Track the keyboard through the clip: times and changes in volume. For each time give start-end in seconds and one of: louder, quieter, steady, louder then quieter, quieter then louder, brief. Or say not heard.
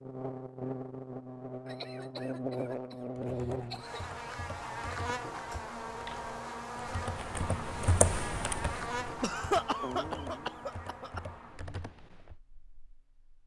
3.1-12.3 louder then quieter.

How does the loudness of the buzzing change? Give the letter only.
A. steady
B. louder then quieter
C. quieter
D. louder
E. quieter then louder
C.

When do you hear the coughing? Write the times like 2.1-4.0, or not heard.
1.6-4.0, 9.2-11.2.